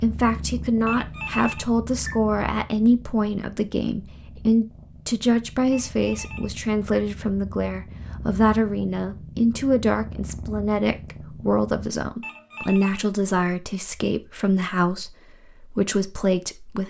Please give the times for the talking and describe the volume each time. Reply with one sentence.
The talking can be heard from 0.0 to 16.8 s, at a steady volume.